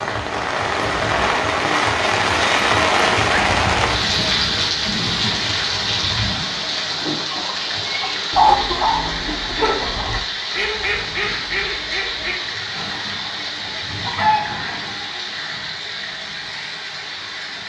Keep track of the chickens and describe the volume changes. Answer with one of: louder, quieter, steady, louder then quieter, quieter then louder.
quieter then louder.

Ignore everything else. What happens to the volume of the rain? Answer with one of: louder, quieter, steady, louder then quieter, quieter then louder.
quieter.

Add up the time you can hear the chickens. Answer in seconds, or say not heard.
8 s.